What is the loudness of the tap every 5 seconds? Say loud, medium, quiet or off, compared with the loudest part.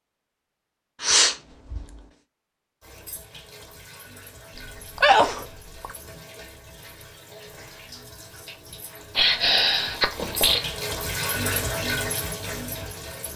quiet, quiet, loud.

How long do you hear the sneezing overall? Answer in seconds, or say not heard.
4 s.